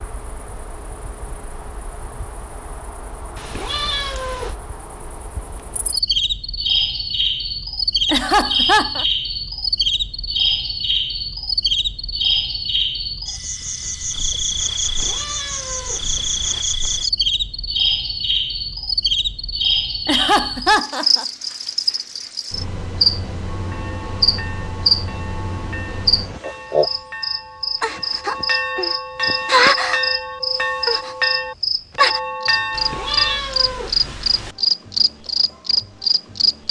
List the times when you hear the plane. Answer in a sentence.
You can't hear the plane here.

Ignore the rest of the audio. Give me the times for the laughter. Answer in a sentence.
You can hear the laughter from 8.1 to 9.1 s and from 20.1 to 21.2 s.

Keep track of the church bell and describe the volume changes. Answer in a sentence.
The volume of the church bell goes up.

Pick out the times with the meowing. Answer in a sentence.
You can hear the meowing from 3.4 to 4.5 s, from 14.8 to 16.6 s and from 32.7 to 34.5 s.